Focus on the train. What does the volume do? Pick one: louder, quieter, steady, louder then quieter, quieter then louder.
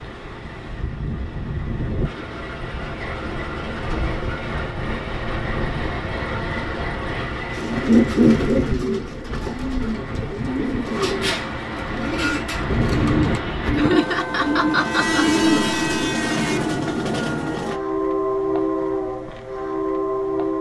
louder.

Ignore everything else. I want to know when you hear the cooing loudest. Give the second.
8 s.